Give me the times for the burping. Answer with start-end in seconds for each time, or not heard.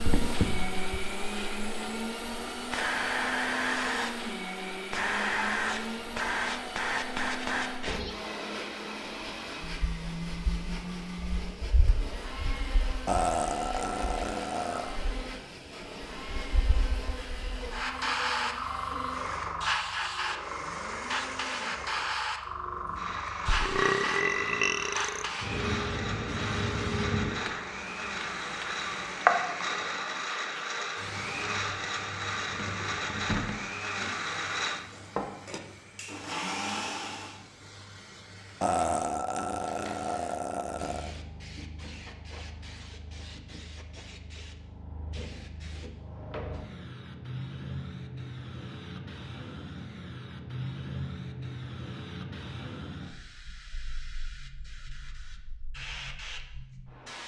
13.1-14.9, 23.4-25.3, 38.6-41.1.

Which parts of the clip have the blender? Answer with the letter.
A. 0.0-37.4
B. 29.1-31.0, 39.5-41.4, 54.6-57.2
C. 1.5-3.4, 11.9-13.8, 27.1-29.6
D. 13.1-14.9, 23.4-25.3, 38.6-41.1
A.